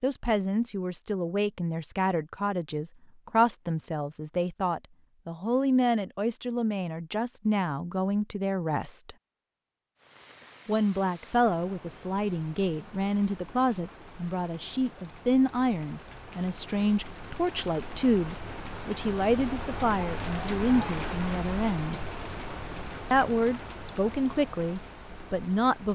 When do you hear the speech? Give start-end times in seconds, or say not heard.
0.0-9.2, 10.7-21.9, 23.1-25.9.